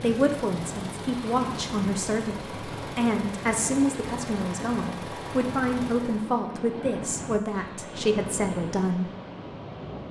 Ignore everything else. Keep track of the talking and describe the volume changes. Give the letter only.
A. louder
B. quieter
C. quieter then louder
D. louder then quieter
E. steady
E.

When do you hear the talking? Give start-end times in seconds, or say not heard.
0.0-9.1.